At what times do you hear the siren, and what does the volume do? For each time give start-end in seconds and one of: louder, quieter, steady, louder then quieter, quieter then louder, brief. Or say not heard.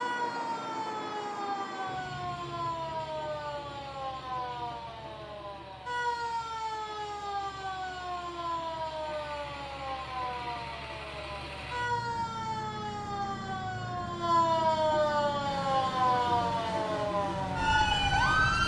0.0-18.6 louder.